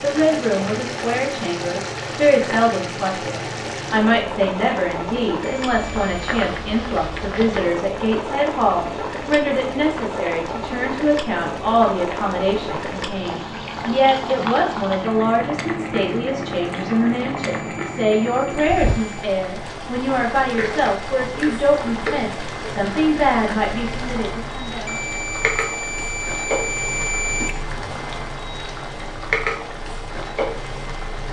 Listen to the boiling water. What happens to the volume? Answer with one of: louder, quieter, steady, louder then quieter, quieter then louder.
steady.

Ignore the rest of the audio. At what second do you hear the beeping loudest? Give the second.
27 s.